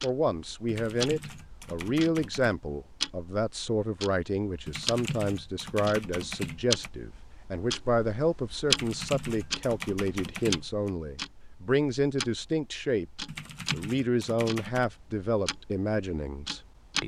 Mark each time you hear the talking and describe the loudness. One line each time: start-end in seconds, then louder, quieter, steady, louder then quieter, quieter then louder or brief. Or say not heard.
0.0-17.0 steady.